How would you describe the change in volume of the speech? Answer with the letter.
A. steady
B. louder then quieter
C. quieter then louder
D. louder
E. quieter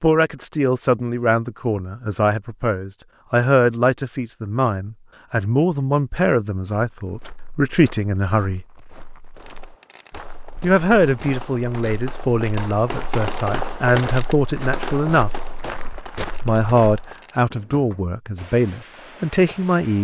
A.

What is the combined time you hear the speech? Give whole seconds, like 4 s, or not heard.
17 s.